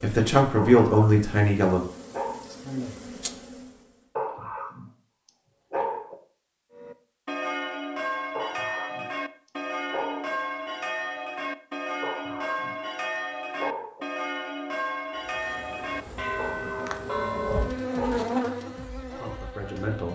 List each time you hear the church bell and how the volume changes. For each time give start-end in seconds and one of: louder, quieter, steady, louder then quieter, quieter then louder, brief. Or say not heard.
6.7-17.9 steady.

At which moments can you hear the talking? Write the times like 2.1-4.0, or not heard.
0.0-1.8, 19.1-20.1.